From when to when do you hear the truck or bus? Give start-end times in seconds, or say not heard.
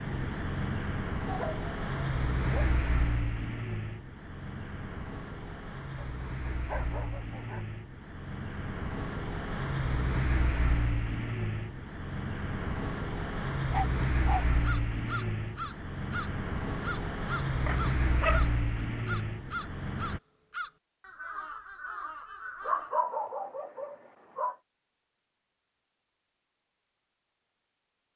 0.0-20.2.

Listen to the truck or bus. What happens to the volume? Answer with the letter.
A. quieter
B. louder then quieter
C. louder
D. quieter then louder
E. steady
D.